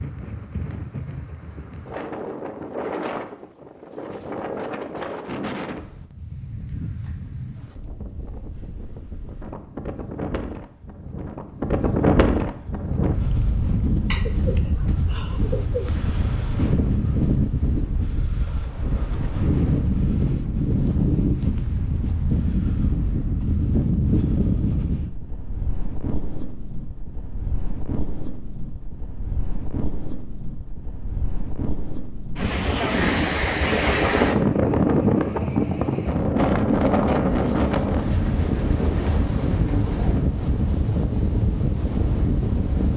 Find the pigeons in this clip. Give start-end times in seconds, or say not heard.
14.1-15.9, 37.5-40.3.